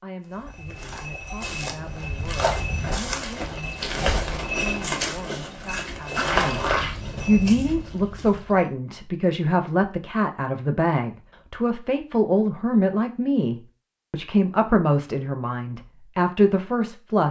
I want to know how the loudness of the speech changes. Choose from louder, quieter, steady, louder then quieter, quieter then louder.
louder.